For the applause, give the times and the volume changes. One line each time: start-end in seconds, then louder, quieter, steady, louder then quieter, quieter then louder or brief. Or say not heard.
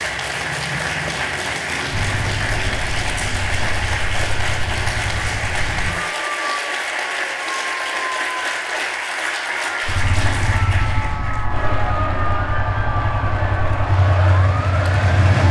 0.0-15.4 steady.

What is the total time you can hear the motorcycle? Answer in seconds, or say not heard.
10 s.